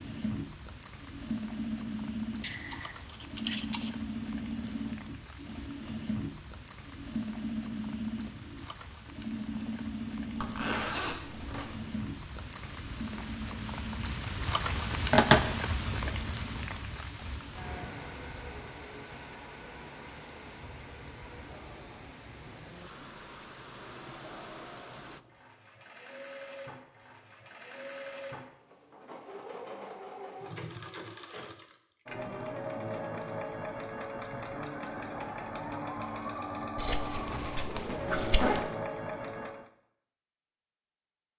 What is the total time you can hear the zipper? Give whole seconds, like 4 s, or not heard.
3 s.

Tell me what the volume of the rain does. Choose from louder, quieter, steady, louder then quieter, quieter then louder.
louder then quieter.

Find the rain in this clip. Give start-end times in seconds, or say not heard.
0.0-25.2.